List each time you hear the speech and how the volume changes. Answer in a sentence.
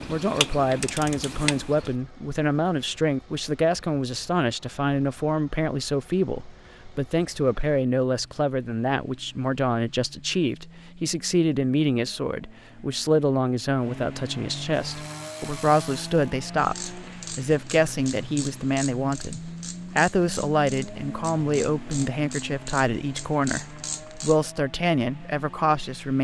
The speech can be heard from 0.1 to 26.1 s, at a steady volume.